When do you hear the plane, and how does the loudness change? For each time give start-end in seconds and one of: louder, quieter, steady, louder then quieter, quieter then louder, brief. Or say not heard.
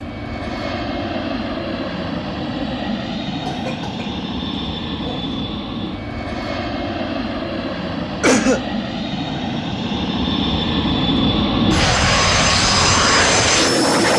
0.0-14.1 louder.